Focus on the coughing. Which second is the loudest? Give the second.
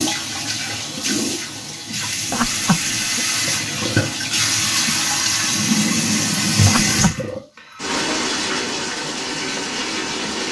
3 s.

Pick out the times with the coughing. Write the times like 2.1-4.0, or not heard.
2.3-3.2, 6.7-7.2.